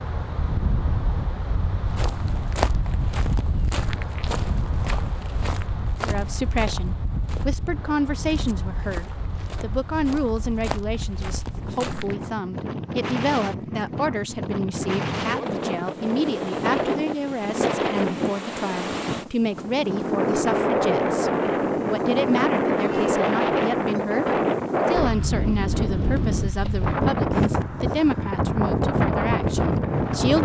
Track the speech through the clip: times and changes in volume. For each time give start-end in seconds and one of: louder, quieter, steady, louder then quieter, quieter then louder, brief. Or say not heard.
6.0-30.4 steady.